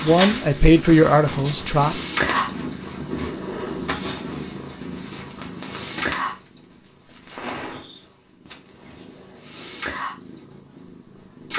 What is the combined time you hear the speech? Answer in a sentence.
The speech can be heard for 2 seconds in total.